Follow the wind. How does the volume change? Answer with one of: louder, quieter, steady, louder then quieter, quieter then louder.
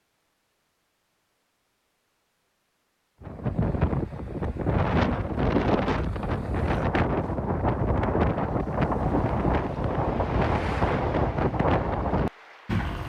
steady.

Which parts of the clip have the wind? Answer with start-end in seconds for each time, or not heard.
3.2-13.0.